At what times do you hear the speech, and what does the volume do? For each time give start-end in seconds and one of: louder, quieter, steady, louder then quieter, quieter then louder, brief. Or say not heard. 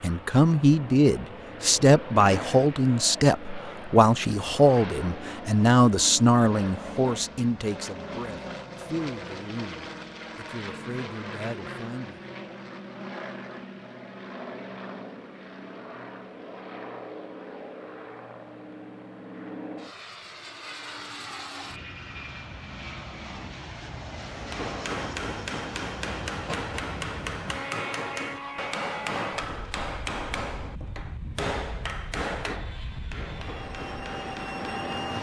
0.0-12.2 quieter.